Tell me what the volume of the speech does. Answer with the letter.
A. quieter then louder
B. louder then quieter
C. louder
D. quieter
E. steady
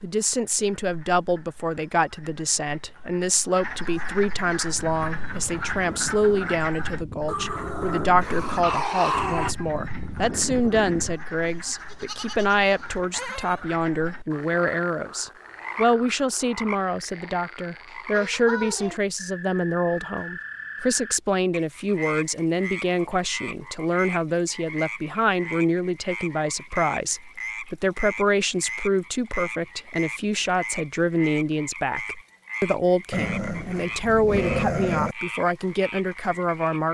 E.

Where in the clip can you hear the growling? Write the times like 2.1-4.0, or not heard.
7.2-9.6, 33.1-35.1.